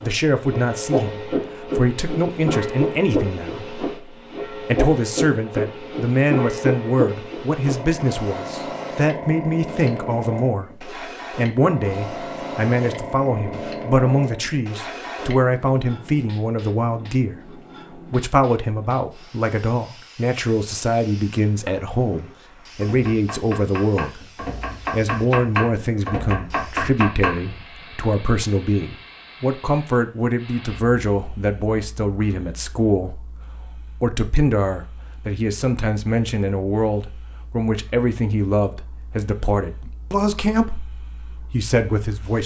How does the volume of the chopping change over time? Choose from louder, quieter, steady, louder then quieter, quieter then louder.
louder.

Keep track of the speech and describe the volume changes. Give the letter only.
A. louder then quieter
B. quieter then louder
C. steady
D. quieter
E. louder
C.